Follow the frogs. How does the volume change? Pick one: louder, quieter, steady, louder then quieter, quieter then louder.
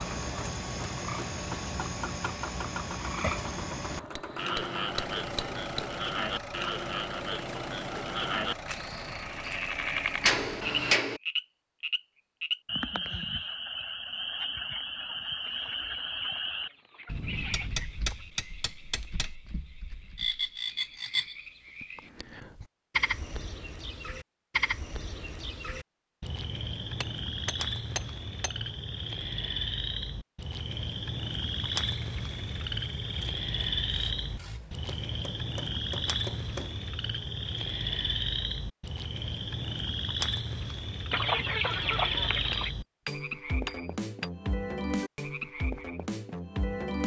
steady.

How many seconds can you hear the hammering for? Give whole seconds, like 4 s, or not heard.
10 s.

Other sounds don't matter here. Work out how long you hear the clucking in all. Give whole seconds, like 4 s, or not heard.
4 s.